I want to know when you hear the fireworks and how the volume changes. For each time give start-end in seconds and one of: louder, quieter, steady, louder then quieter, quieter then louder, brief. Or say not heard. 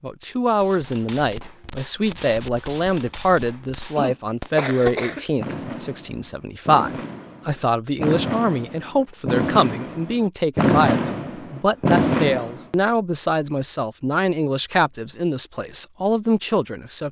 0.6-12.6 louder.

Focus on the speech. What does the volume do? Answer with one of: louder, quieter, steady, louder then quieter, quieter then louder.
steady.